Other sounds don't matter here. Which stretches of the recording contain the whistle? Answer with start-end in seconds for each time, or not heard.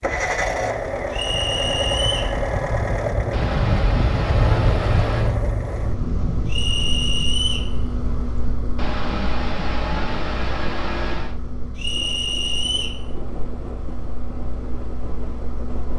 1.1-2.4, 6.5-7.7, 11.8-13.0.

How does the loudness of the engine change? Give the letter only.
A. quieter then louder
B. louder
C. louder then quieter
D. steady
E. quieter
E.